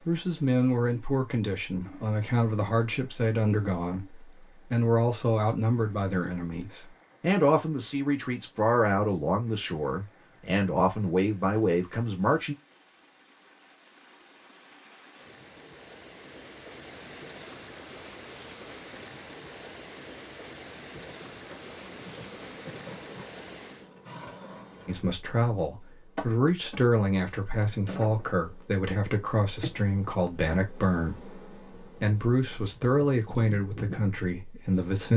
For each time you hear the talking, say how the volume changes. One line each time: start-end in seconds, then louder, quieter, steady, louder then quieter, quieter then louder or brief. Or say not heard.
0.1-12.6 steady
24.9-35.1 steady.